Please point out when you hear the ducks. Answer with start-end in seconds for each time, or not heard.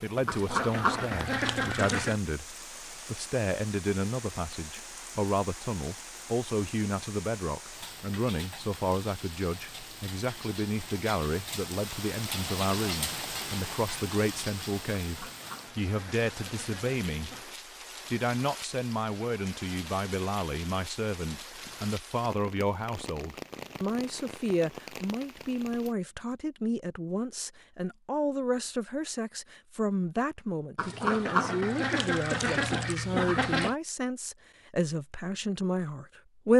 0.2-2.2, 15.0-17.4, 30.8-33.8.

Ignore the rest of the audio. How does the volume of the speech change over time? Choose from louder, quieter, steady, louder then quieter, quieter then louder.
steady.